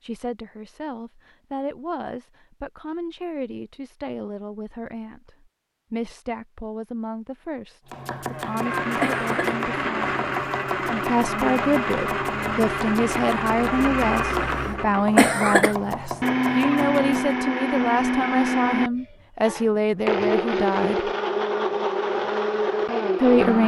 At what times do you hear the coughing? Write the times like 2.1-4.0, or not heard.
8.2-9.6, 14.5-15.8.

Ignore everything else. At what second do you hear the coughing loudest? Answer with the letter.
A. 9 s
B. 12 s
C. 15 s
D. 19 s
C.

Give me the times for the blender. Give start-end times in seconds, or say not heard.
8.4-23.6.